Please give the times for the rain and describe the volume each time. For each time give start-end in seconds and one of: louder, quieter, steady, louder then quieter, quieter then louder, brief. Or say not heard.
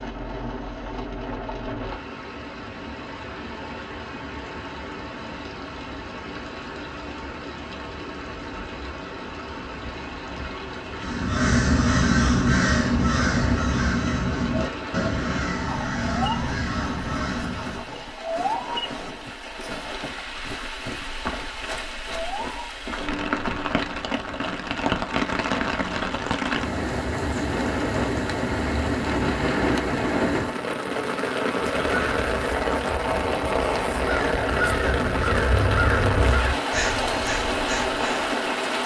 0.0-38.8 louder.